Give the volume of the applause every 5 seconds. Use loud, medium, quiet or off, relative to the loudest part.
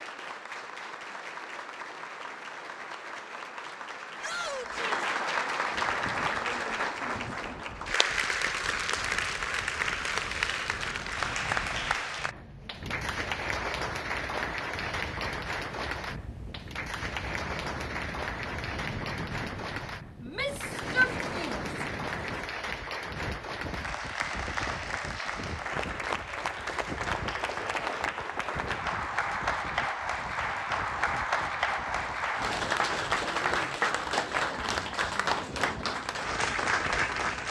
medium, loud, loud, medium, medium, loud, loud, loud.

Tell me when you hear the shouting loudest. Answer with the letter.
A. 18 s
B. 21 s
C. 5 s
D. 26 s
B.